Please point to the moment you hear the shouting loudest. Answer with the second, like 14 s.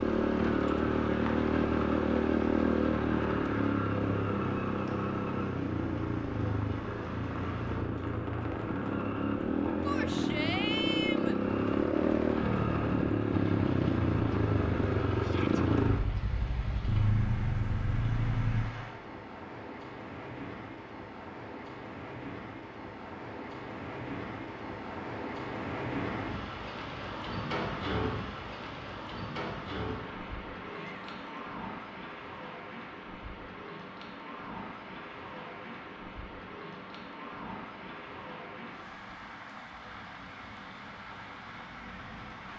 11 s.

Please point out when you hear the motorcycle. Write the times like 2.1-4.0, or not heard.
0.0-18.8.